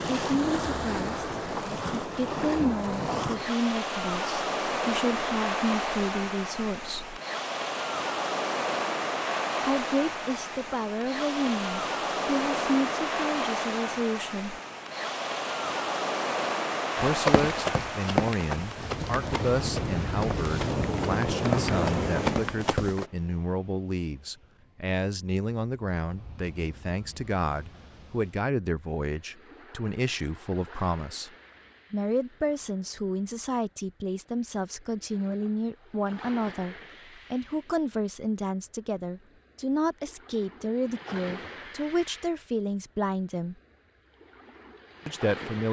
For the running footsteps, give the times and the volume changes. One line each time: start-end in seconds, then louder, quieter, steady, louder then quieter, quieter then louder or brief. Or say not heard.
17.1-23.1 quieter then louder.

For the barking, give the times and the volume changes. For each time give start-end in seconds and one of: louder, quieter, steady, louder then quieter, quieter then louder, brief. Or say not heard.
not heard.